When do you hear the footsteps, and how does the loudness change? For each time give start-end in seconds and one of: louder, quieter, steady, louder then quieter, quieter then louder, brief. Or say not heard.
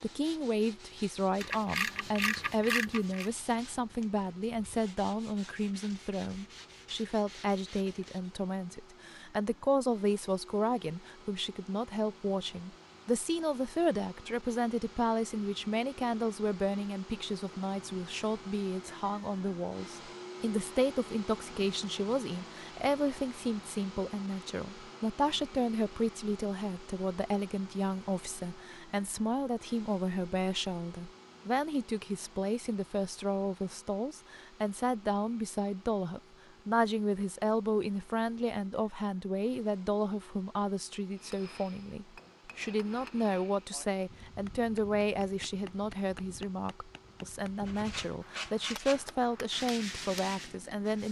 not heard.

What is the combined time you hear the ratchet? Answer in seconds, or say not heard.
2 s.